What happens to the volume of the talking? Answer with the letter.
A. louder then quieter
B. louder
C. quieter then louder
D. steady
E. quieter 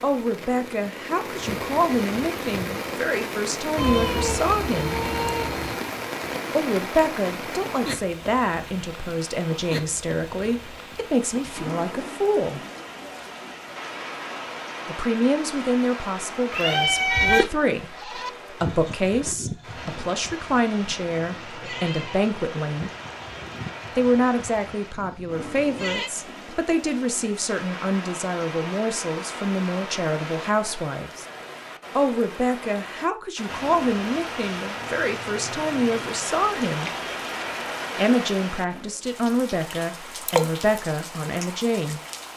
D.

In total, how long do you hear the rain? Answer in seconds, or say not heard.
42 s.